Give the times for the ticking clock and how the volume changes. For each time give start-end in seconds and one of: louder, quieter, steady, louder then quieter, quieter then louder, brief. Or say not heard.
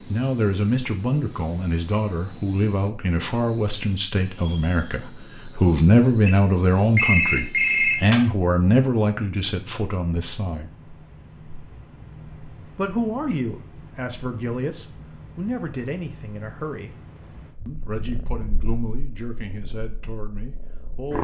not heard.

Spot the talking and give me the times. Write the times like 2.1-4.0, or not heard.
0.0-10.8, 12.8-16.9, 17.6-21.1.